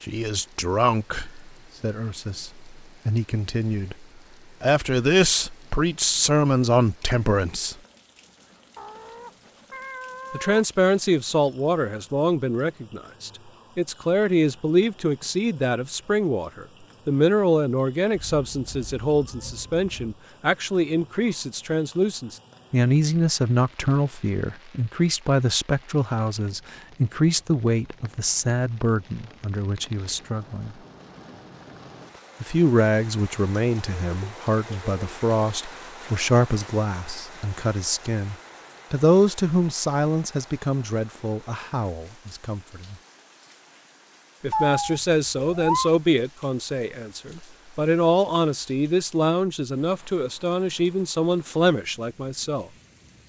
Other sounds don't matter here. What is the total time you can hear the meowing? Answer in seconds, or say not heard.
5 s.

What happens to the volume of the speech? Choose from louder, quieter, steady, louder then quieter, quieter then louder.
steady.